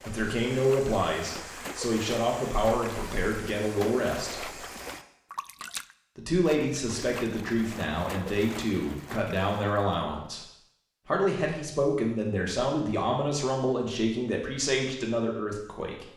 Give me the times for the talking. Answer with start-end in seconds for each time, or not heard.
0.1-4.5, 6.2-10.4, 11.1-16.1.